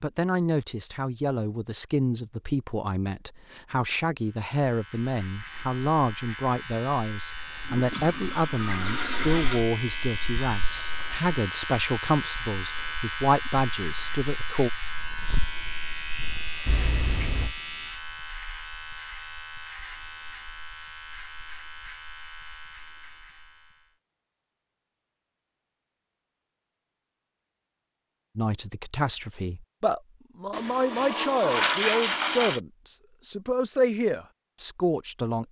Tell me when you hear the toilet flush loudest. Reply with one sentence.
The loudest moment of the toilet flush is at 32 seconds.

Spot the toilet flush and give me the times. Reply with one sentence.
You can hear the toilet flush from 7.7 to 9.7 s, from 16.6 to 17.6 s and from 30.5 to 32.6 s.